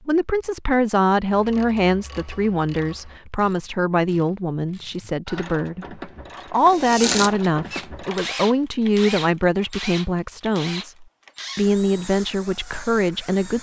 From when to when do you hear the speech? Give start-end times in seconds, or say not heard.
0.1-13.5.